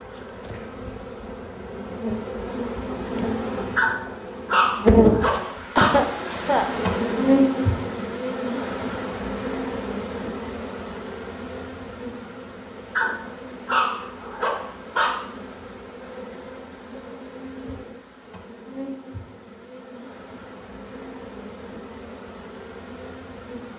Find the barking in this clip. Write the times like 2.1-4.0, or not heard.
3.8-6.0, 12.9-15.2.